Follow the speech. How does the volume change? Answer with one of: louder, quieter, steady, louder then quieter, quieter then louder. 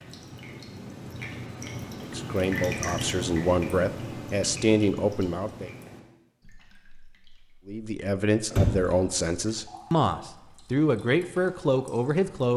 steady.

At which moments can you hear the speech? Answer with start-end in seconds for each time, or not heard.
2.0-5.7, 7.7-12.5.